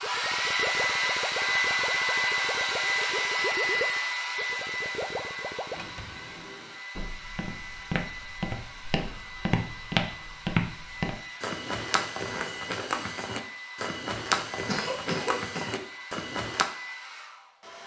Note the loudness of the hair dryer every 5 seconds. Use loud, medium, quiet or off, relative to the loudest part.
loud, quiet, quiet, quiet.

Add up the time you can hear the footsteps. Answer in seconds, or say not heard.
10 s.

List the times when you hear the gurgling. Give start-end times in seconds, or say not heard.
0.0-5.8.